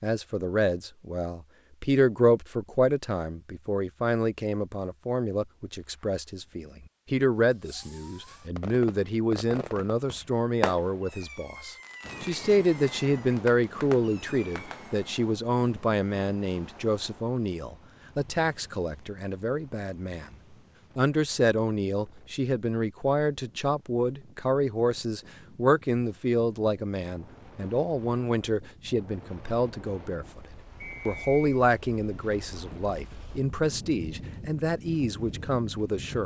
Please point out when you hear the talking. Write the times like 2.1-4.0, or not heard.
0.0-20.3, 20.9-30.4, 31.1-36.2.